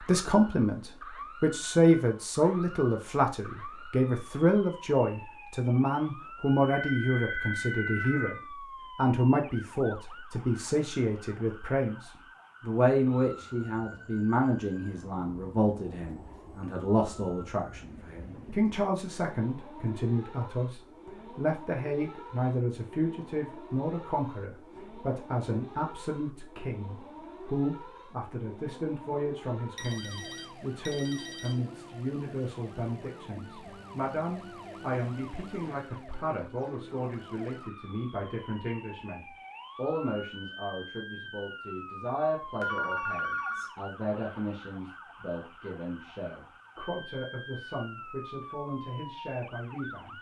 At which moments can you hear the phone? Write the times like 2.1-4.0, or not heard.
6.7-8.4, 29.8-31.6, 42.6-43.7.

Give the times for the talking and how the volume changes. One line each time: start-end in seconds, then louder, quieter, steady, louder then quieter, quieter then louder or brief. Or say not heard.
0.0-50.1 quieter.